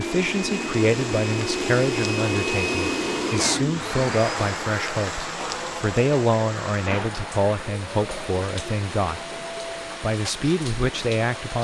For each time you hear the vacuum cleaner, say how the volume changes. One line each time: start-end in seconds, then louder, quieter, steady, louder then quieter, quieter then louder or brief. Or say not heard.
0.0-11.5 quieter.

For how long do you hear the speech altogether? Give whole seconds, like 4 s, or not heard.
11 s.